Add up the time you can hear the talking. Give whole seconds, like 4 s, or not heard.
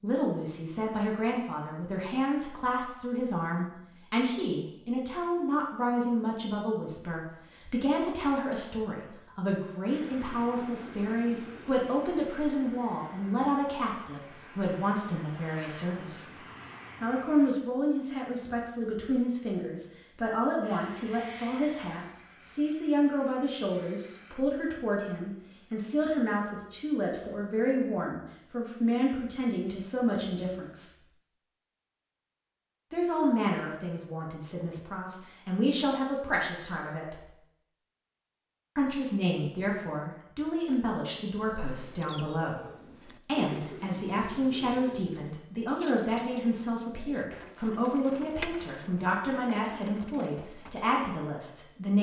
48 s.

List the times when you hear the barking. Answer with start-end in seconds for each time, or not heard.
not heard.